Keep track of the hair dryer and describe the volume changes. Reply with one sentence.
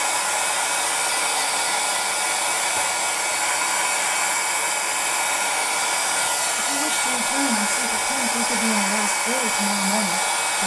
The loudness of the hair dryer stays about the same.